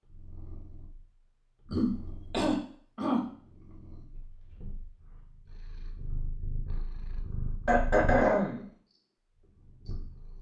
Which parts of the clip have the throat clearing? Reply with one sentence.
You can hear the throat clearing from 1.7 to 3.2 s and from 7.7 to 8.7 s.